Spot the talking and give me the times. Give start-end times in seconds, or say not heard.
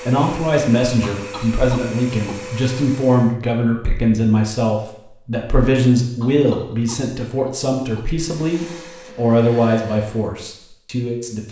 0.0-11.4.